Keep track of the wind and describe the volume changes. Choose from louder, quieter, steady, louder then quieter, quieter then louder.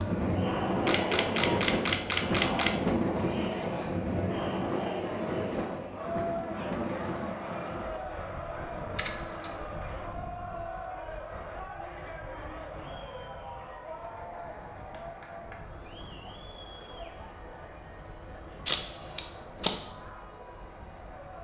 quieter.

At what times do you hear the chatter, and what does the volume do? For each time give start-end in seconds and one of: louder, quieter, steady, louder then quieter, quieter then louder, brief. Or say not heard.
0.0-21.3 quieter.